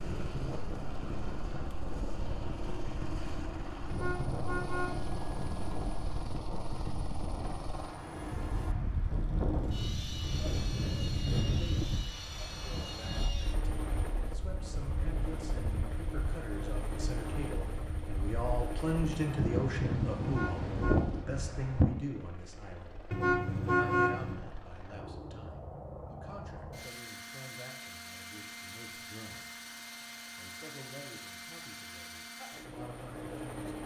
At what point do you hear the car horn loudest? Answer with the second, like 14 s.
24 s.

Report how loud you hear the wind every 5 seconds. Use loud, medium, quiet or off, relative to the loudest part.
medium, medium, medium, medium, loud, off, off.